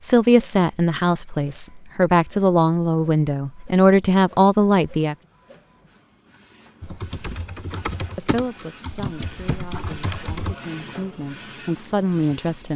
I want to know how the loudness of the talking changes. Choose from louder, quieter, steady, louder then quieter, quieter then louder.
quieter then louder.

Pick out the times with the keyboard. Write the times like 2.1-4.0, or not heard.
6.8-10.6.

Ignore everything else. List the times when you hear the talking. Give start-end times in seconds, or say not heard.
0.0-5.2, 8.2-12.7.